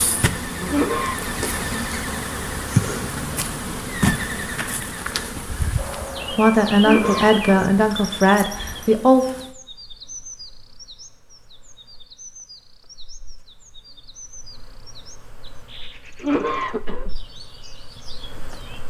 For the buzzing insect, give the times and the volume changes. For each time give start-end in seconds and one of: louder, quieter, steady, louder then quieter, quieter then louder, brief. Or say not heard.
0.0-18.8 quieter then louder.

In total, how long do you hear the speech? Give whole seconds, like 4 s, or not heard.
3 s.